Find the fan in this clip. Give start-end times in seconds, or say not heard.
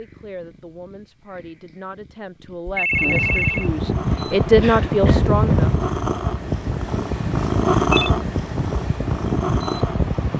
2.9-10.3.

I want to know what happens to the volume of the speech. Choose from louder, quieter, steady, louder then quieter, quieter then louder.
louder.